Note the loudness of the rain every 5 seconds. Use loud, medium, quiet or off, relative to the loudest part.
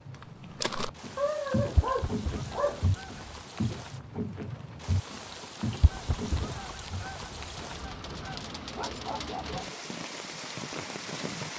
medium, loud, loud.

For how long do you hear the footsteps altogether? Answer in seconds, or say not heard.
7 s.